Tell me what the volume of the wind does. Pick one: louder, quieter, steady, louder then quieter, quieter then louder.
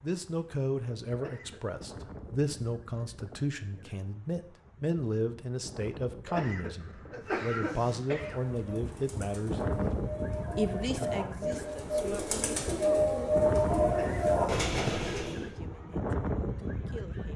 louder.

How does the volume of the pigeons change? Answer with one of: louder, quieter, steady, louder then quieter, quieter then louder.
louder.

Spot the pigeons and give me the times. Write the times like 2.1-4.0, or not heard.
7.2-15.6.